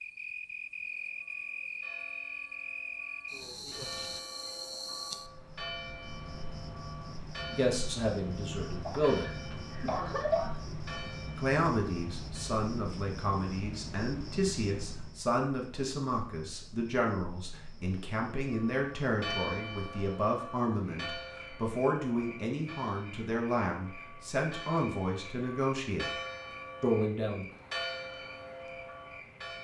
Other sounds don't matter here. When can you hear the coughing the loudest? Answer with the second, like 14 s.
10 s.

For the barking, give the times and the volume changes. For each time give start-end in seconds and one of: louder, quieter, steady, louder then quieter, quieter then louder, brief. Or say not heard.
not heard.